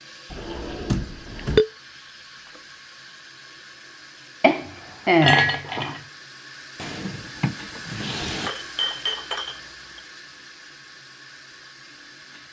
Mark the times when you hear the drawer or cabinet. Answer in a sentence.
The drawer or cabinet can be heard from 0.3 to 1.6 s and from 6.8 to 8.5 s.